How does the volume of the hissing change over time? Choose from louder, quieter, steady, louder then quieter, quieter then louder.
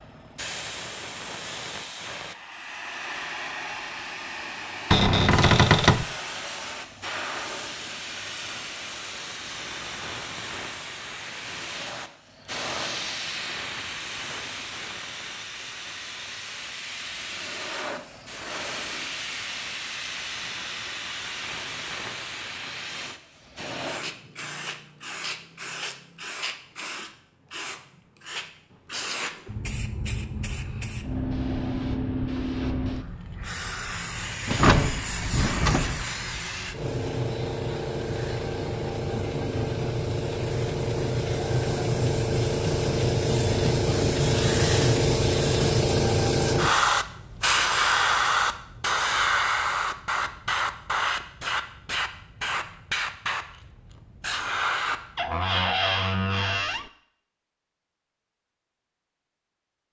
louder.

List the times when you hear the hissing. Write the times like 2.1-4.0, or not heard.
0.0-55.0.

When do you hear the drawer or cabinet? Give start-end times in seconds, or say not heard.
4.9-6.0, 34.5-36.0, 55.1-56.9.